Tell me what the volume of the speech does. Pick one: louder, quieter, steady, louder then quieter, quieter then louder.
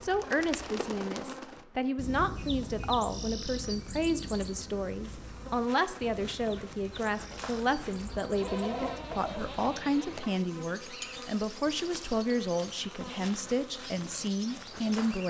steady.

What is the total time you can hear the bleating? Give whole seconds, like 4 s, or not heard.
2 s.